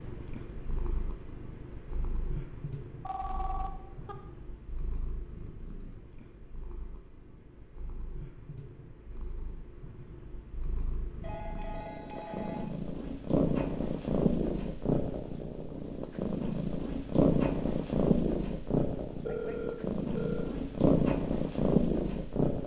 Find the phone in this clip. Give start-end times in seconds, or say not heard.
3.0-4.2, 11.2-12.7, 19.2-20.6.